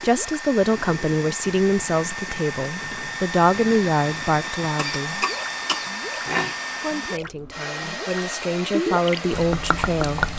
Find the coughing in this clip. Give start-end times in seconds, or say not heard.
4.8-6.5.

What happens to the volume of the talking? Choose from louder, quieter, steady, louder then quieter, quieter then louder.
quieter then louder.